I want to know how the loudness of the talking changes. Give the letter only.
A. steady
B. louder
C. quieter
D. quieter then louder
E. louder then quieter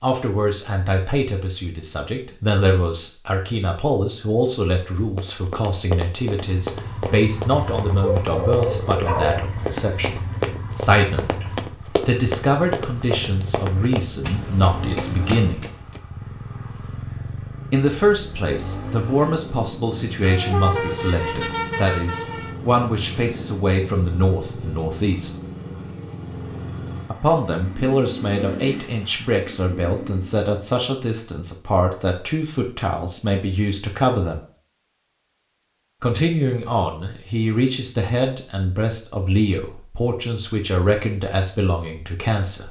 A.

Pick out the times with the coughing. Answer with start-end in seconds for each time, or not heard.
not heard.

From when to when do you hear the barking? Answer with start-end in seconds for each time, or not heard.
7.9-9.4.